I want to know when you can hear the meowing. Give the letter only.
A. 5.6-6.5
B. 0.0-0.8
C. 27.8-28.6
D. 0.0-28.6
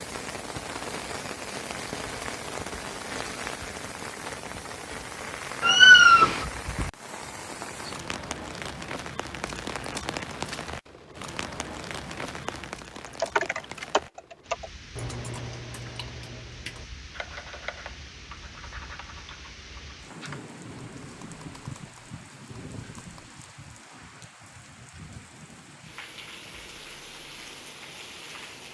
A.